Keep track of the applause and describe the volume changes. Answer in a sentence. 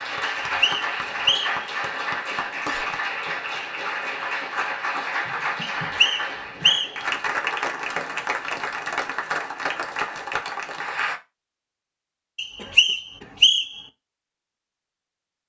The loudness of the applause stays about the same.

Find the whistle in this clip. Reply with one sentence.
You can hear the whistle from 0.4 to 1.6 s, from 5.6 to 7.0 s and from 12.3 to 13.8 s.